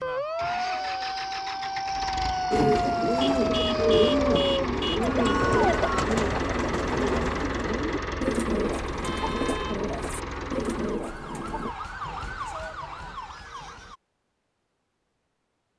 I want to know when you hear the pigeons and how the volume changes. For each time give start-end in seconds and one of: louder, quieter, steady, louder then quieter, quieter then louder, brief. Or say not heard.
2.5-11.8 quieter.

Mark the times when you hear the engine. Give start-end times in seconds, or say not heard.
0.2-11.0.